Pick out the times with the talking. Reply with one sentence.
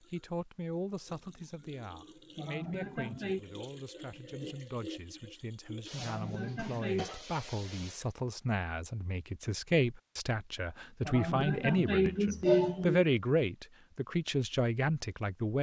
The talking can be heard from 0.1 to 15.5 s.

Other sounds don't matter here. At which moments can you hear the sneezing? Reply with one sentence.
You can hear the sneezing from 2.4 to 3.4 s, from 6.0 to 7.1 s and from 11.1 to 13.1 s.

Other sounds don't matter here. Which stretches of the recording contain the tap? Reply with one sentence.
You can hear the tap from 0.0 to 8.1 s.